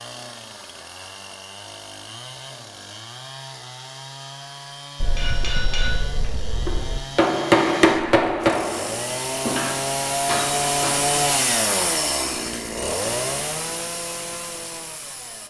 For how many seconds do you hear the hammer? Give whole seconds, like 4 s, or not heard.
6 s.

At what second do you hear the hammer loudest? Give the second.
8 s.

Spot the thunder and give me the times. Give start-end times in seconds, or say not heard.
5.0-7.0.